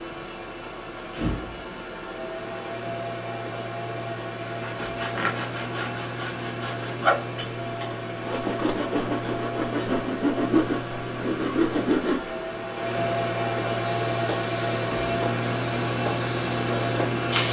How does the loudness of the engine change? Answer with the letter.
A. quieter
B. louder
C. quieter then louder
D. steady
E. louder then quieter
B.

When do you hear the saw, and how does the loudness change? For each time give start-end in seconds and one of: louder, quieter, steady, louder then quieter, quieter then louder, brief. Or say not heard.
4.5-12.3 louder.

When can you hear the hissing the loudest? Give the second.
17 s.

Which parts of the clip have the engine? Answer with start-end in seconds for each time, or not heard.
0.0-17.4.